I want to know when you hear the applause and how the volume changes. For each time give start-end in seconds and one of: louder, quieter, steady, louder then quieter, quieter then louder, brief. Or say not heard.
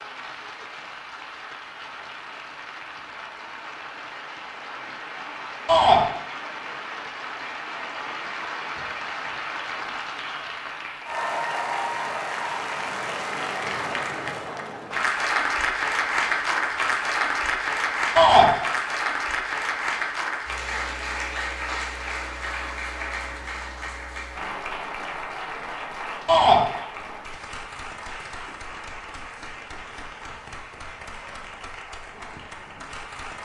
0.0-33.3 louder then quieter.